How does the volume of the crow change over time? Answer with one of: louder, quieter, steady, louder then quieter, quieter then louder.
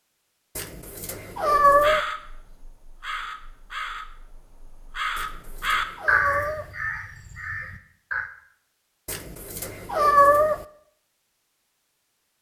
louder then quieter.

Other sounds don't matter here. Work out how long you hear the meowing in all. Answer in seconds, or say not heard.
5 s.